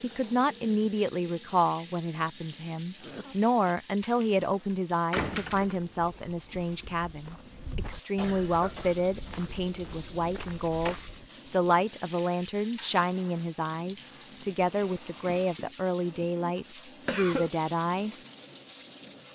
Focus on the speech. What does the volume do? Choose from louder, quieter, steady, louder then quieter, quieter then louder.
steady.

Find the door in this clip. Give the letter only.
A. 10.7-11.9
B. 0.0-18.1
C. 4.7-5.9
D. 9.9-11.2
C.